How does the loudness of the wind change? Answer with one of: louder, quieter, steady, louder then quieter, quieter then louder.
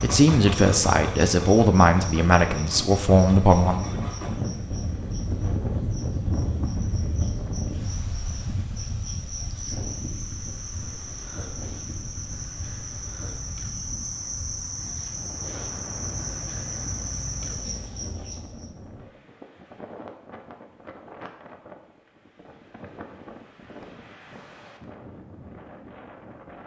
quieter.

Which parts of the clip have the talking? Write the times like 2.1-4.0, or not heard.
0.0-3.9.